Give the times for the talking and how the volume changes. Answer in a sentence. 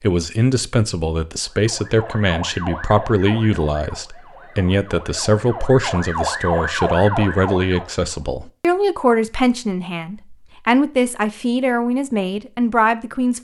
You can hear the talking from 0.0 to 13.3 s, at a steady volume.